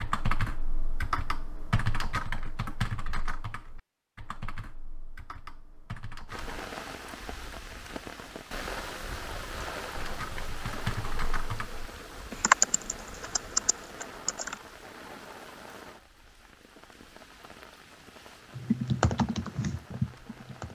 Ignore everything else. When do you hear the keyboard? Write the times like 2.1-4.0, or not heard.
0.0-6.6, 9.9-14.6, 18.6-20.7.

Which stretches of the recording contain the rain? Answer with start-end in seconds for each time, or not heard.
6.2-20.7.